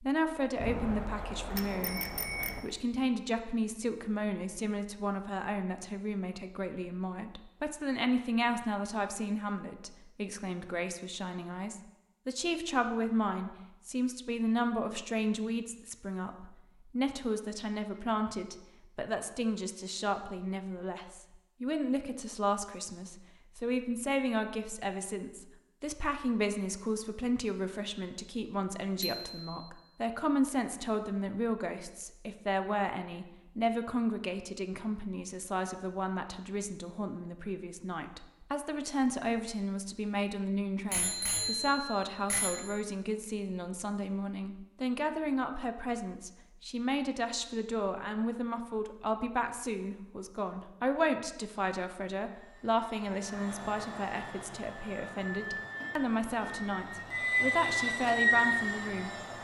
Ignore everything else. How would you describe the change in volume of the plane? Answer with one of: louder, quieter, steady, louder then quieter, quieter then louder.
louder.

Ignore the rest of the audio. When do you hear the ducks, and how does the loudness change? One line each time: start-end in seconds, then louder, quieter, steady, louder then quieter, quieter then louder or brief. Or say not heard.
not heard.